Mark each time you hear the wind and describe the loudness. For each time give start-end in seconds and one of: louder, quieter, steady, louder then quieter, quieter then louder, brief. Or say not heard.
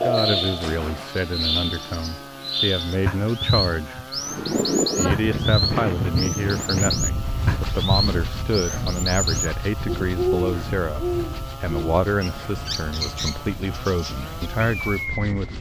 4.2-15.5 quieter.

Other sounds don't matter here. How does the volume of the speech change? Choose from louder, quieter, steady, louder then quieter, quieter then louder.
steady.